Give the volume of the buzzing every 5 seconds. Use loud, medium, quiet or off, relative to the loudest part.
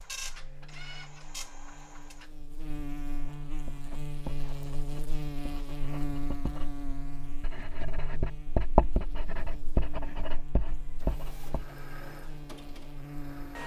loud, loud, medium.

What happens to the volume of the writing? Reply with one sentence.
The loudness of the writing goes up, then down.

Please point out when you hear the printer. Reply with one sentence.
You can hear the printer from 0.0 to 2.3 s and from 10.8 to 13.6 s.